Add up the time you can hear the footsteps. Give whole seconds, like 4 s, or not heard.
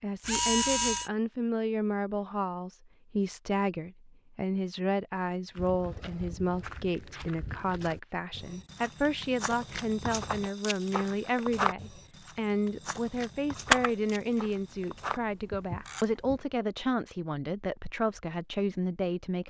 11 s.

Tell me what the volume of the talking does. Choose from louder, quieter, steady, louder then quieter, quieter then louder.
steady.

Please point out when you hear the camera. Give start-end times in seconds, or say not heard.
0.2-1.1, 13.7-16.2.